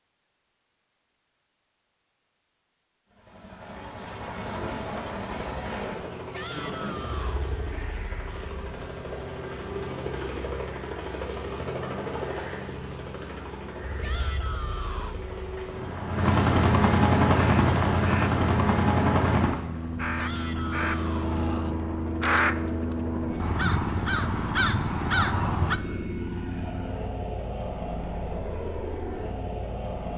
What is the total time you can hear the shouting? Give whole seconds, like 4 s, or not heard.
4 s.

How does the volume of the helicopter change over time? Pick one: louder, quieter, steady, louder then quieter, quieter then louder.
louder then quieter.